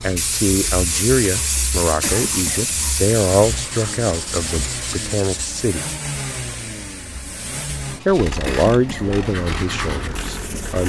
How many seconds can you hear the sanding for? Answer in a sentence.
You can hear the sanding for 8 seconds altogether.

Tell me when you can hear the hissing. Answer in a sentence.
The hissing can be heard from 0.0 to 3.3 s.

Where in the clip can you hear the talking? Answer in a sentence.
The talking can be heard from 0.0 to 5.8 s and from 8.1 to 10.8 s.